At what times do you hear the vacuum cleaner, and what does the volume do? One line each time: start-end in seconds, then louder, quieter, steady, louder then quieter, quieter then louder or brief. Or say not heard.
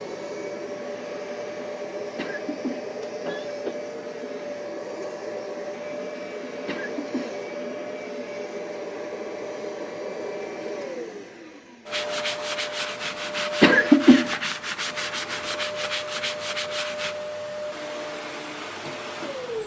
0.0-19.6 steady.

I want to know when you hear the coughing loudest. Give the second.
14 s.